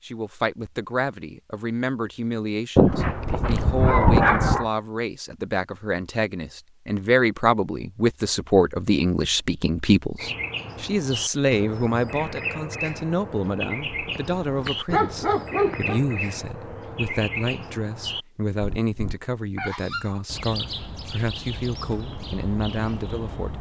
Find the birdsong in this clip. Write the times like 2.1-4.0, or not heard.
10.2-23.5.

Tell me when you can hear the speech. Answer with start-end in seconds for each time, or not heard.
0.0-23.5.